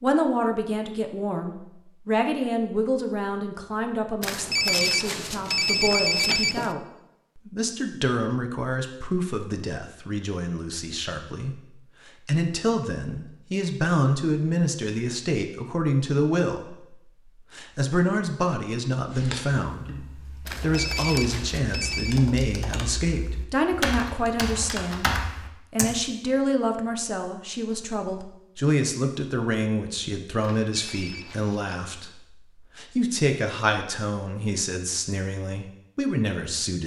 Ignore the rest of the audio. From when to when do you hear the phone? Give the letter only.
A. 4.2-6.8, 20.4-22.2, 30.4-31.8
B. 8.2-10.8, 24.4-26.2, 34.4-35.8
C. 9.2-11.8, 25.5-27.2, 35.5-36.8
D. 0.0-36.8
A.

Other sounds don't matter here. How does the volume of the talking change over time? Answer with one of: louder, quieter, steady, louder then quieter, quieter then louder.
steady.